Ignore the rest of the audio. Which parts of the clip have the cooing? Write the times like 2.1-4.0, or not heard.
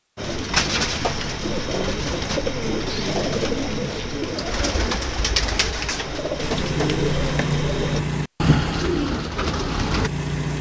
0.1-10.1.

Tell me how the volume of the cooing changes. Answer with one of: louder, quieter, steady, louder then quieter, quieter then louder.
steady.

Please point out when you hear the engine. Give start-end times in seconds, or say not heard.
6.4-10.5.